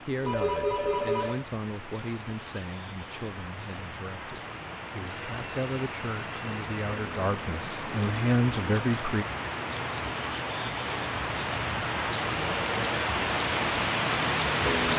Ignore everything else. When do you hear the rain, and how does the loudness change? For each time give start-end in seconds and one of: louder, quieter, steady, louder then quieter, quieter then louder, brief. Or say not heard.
0.0-14.9 louder.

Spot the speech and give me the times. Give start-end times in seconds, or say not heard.
0.0-9.2.